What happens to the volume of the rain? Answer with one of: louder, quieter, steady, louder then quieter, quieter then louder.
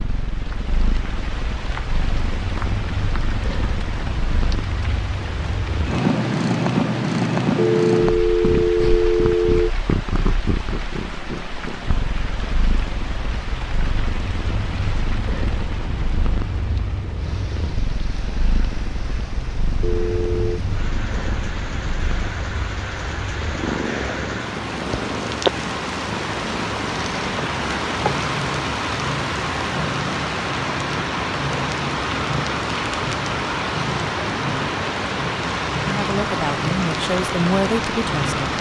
louder.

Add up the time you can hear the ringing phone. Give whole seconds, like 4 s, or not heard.
3 s.